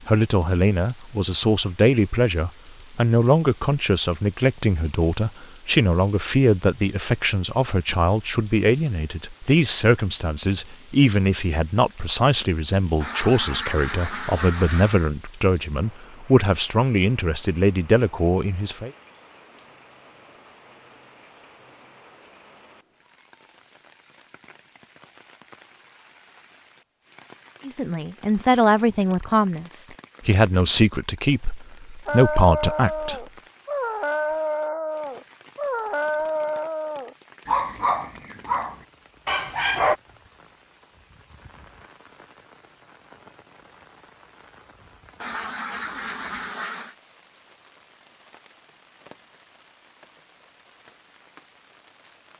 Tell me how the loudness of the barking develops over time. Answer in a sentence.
The loudness of the barking stays about the same.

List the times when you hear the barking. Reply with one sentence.
The barking can be heard from 32.0 to 40.0 s.